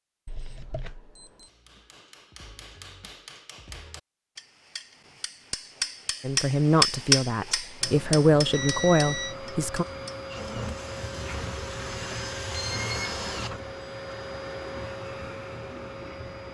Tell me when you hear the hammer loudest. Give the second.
7 s.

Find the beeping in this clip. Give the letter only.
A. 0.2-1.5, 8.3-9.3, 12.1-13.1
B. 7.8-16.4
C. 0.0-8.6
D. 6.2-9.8
A.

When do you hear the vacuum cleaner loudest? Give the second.
13 s.